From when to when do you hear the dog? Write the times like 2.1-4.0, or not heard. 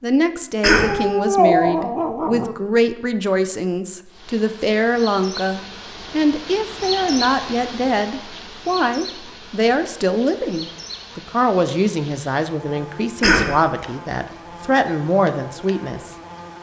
0.8-2.5.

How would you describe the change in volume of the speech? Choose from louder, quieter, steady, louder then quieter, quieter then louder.
steady.